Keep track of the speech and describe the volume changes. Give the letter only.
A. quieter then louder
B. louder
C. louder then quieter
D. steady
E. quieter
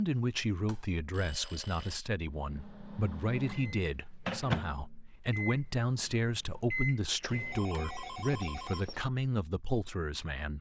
D.